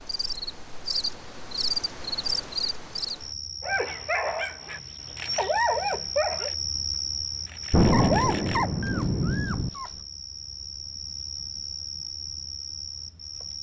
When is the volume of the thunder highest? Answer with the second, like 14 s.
8 s.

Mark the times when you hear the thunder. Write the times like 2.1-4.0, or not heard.
7.7-9.7.